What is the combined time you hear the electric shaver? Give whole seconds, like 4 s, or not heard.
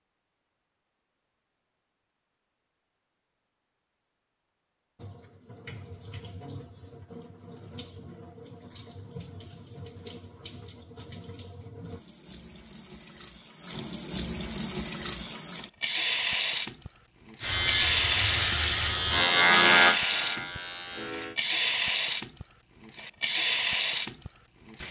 4 s.